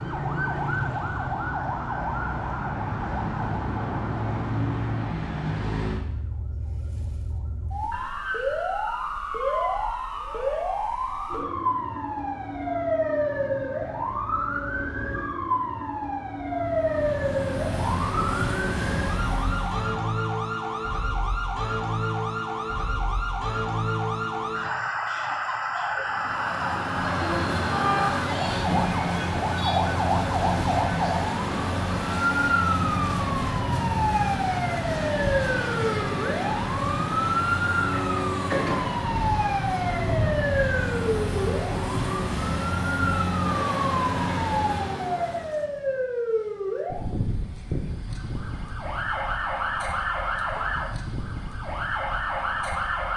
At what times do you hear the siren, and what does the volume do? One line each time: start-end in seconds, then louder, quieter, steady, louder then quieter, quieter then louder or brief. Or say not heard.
0.0-53.1 steady.